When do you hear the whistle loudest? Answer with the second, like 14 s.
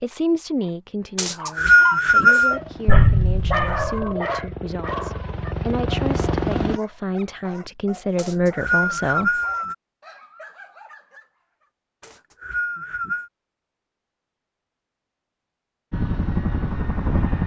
2 s.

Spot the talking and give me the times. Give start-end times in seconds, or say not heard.
0.0-9.3.